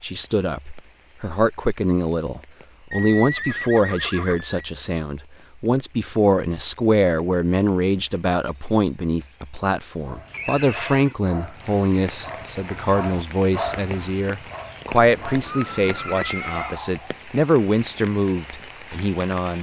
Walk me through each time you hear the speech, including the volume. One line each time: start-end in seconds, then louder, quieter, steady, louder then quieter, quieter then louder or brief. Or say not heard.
0.0-19.5 steady.